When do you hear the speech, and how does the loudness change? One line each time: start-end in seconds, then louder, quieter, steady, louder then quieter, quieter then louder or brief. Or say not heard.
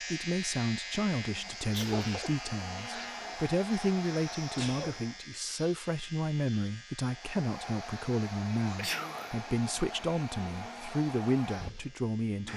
0.1-12.5 steady.